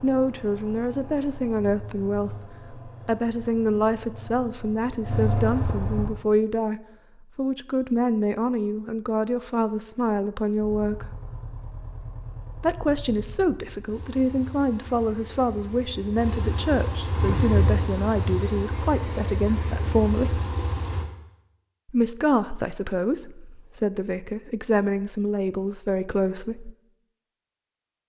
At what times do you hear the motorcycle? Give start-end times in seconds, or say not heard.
0.0-6.2, 10.6-21.1.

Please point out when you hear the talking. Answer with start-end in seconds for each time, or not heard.
0.0-11.2, 12.6-20.4, 21.9-26.7.